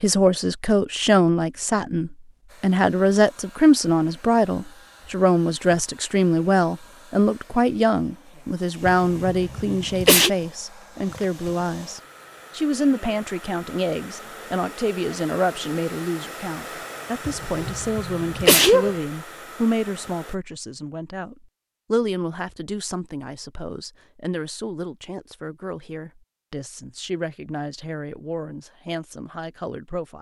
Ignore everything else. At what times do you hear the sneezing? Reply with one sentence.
The sneezing can be heard from 8.8 to 10.3 s and from 17.2 to 18.9 s.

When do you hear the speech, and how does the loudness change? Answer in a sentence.
The speech can be heard from 0.0 to 30.1 s, getting quieter.